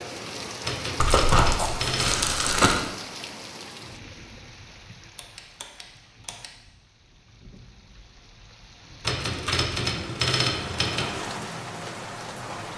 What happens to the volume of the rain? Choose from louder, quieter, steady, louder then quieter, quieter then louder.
quieter then louder.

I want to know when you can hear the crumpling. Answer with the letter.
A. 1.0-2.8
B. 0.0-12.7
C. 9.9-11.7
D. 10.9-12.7
A.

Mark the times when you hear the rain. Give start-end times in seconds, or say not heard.
0.0-12.7.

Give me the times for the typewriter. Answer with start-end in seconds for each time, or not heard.
0.6-2.5, 4.9-6.5, 9.0-11.1.